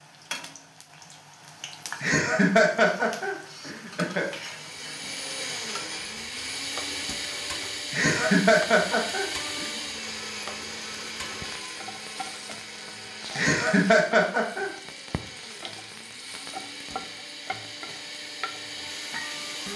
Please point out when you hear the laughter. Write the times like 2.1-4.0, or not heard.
2.0-4.2, 7.9-9.7, 13.3-14.7.